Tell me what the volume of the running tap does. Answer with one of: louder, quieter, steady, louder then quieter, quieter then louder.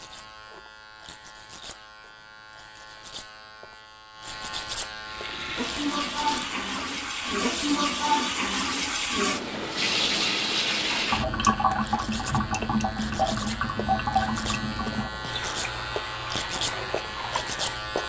quieter.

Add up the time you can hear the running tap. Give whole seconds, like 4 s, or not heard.
13 s.